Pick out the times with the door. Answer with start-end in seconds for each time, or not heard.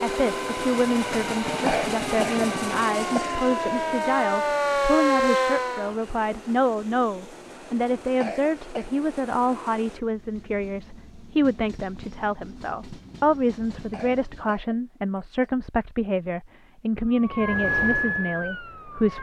not heard.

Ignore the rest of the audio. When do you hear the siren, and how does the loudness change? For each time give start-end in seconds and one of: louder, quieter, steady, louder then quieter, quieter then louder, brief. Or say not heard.
0.2-6.0 louder
17.1-19.1 brief.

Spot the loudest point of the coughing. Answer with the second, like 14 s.
2 s.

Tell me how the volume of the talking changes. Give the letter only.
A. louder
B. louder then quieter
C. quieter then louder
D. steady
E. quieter
D.